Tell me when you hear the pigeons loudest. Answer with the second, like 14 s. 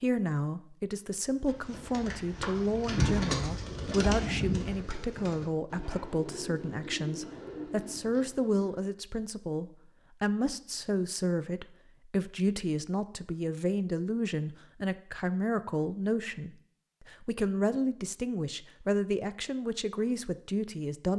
3 s.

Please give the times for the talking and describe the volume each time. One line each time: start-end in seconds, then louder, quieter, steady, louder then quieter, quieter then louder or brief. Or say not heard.
0.0-21.1 steady.